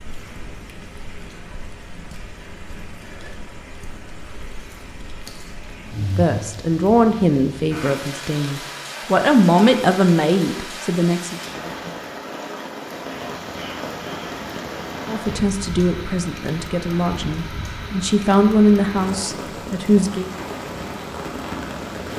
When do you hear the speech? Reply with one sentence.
You can hear the speech from 6.0 to 11.4 s and from 15.1 to 20.3 s.